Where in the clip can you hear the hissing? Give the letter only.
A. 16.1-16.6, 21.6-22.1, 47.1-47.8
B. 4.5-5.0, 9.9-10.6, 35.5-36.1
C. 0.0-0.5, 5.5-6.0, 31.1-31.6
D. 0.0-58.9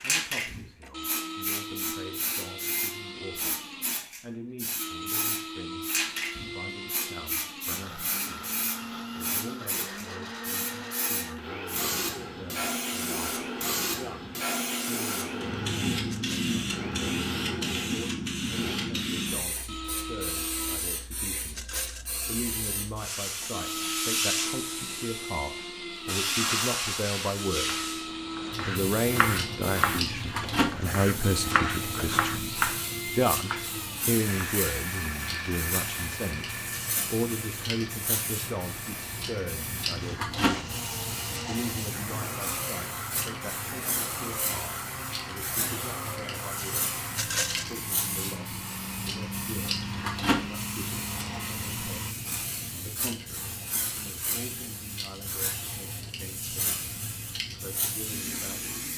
D.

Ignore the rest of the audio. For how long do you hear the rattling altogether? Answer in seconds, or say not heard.
2 s.